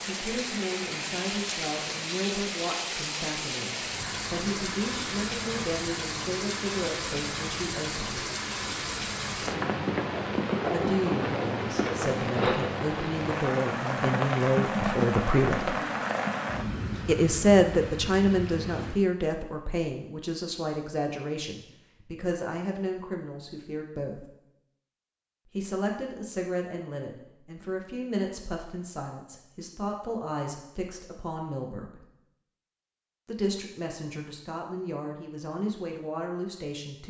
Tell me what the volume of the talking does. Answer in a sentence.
The loudness of the talking goes up, then down.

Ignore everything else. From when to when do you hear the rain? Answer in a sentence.
You can hear the rain from 0.0 to 19.0 s.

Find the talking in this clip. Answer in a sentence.
The talking can be heard from 0.1 to 8.2 s, from 10.7 to 15.8 s, from 17.1 to 24.2 s, from 25.4 to 32.0 s and from 33.2 to 37.0 s.